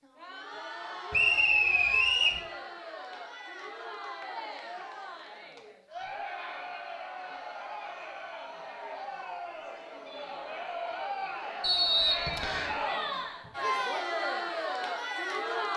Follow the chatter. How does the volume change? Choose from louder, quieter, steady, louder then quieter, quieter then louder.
louder.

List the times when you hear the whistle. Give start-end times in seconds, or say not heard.
1.1-2.4, 11.6-12.8.